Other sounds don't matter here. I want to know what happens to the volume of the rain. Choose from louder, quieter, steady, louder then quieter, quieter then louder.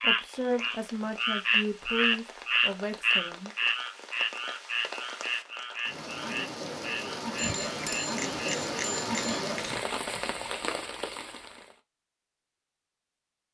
louder.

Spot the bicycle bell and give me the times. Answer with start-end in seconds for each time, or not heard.
7.3-9.8.